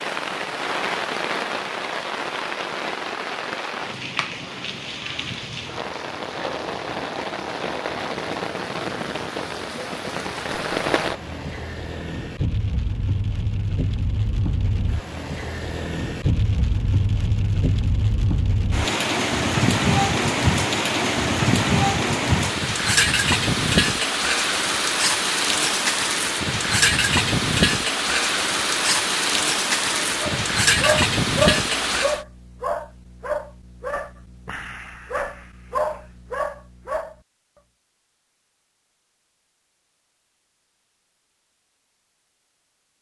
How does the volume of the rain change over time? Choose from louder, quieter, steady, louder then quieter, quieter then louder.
louder.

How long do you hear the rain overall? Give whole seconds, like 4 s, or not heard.
32 s.